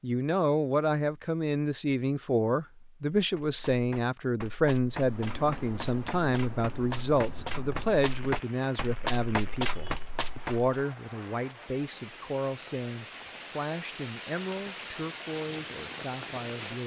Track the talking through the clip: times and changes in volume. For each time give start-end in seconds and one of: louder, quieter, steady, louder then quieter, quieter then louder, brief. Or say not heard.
0.0-16.8 quieter.